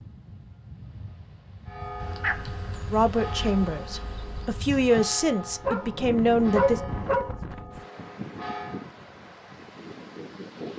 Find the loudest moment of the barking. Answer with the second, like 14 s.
7 s.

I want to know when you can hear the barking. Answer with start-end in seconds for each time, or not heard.
2.0-3.5, 5.6-7.3.